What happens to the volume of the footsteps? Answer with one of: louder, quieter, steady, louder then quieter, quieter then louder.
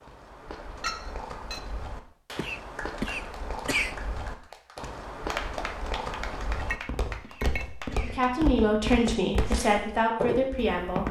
louder.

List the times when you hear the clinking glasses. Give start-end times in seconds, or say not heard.
0.8-1.6, 6.5-7.7.